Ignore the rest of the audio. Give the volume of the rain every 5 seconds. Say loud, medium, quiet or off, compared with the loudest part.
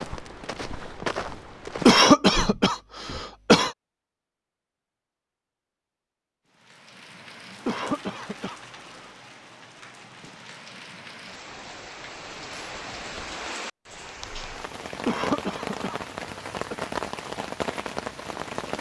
off, quiet, medium, loud.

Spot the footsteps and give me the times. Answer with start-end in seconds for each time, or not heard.
0.0-3.7.